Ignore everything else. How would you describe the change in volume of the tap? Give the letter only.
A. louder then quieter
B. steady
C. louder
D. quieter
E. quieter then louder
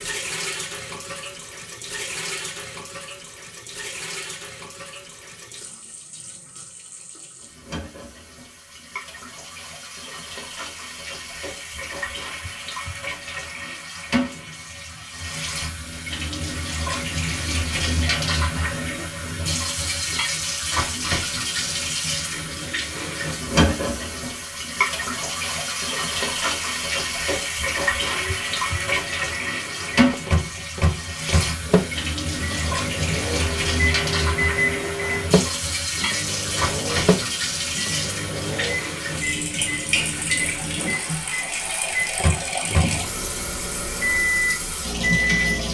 C.